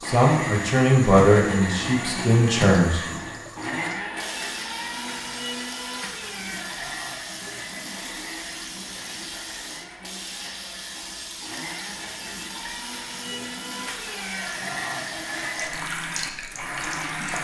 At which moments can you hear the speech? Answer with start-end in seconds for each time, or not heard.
0.0-3.0.